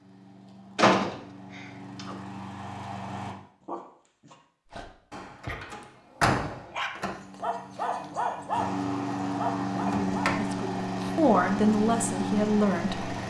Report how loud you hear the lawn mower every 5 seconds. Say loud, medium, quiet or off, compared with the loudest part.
medium, loud, loud.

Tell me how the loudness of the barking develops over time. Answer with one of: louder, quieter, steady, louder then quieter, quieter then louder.
louder.